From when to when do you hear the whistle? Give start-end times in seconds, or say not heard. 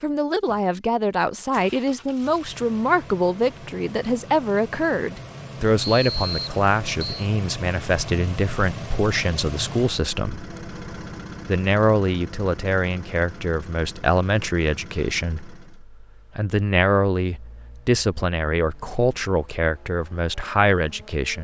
5.8-7.2.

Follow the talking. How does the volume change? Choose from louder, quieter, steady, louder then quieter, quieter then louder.
steady.